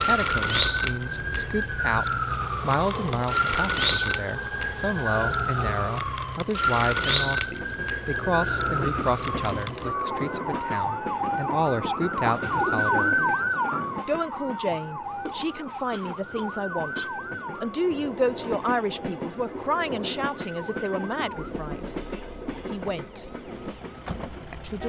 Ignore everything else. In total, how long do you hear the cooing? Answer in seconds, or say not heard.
2 s.